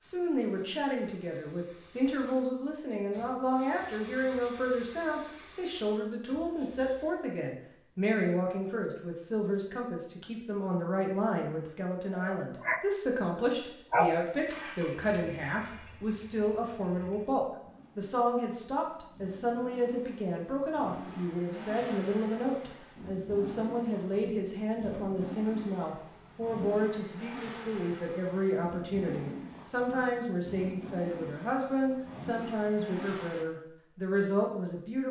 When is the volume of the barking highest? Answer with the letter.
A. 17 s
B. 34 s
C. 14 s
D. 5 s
C.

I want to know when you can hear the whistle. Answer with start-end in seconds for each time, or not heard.
not heard.